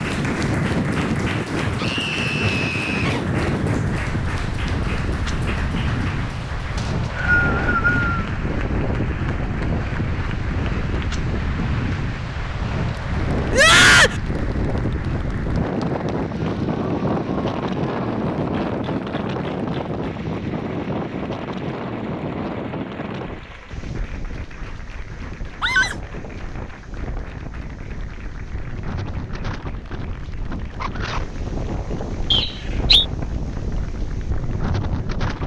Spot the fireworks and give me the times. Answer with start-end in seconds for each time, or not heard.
not heard.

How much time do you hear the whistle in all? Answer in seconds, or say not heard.
2 s.